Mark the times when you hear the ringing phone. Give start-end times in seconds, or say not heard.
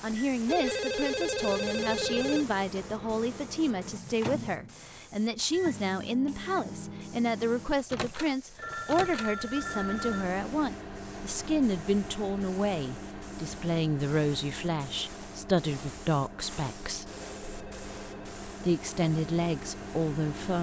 0.5-2.5, 8.6-10.3, 17.2-18.4.